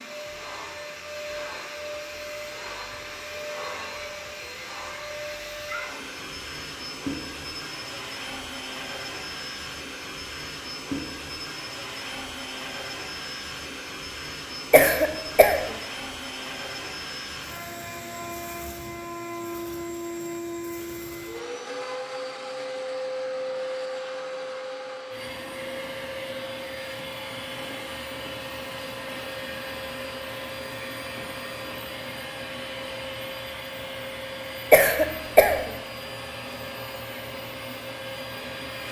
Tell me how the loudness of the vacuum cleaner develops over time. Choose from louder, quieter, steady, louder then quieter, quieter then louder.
steady.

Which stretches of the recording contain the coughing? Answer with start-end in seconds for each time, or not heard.
14.7-15.8, 34.7-35.7.